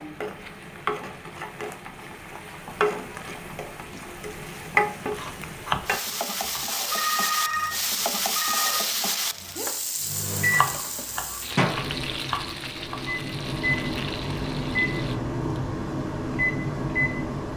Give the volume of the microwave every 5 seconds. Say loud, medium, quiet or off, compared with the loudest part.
off, off, loud, loud.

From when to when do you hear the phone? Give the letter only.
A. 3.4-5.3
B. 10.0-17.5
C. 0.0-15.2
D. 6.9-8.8
D.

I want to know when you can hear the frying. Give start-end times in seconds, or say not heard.
0.0-15.2.